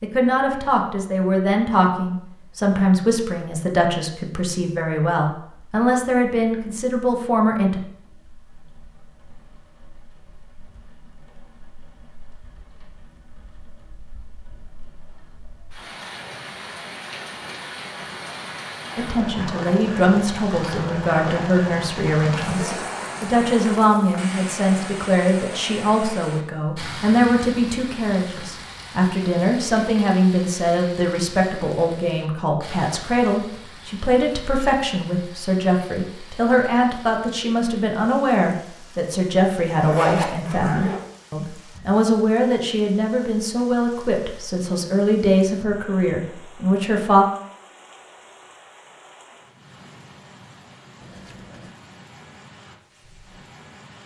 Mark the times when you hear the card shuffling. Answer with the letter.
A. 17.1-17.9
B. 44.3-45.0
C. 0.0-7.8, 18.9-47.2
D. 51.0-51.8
D.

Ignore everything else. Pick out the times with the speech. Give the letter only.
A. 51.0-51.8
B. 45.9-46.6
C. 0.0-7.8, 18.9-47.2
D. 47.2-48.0
C.